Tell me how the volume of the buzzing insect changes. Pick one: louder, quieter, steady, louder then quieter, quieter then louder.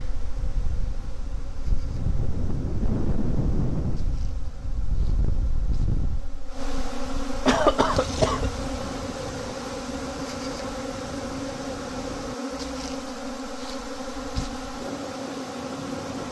louder.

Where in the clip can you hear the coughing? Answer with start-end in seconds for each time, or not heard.
7.5-8.5.